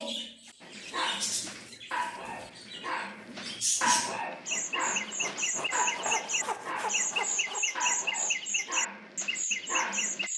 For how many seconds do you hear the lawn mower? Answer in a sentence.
The lawn mower can't be heard in this clip.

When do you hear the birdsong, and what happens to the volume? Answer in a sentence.
You can hear the birdsong from 0.0 to 10.3 s, getting louder.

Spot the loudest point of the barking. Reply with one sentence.
The volume of the barking peaks at 4 seconds.